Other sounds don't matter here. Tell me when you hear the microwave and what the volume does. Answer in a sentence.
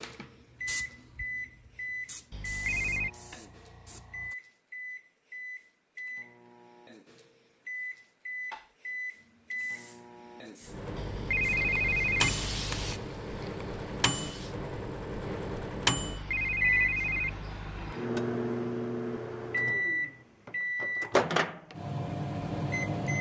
The microwave can be heard from 0.0 to 23.1 s, getting louder.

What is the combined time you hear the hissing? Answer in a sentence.
The hissing can be heard for 10 seconds in total.